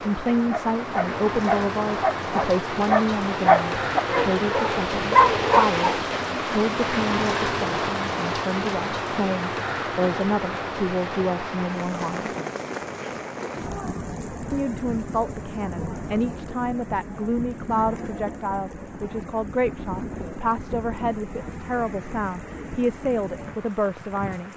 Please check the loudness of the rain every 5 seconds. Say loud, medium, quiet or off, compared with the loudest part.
loud, loud, medium, medium, medium.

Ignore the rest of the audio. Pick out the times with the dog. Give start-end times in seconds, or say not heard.
0.5-6.0.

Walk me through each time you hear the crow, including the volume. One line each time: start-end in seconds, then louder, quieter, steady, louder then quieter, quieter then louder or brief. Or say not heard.
not heard.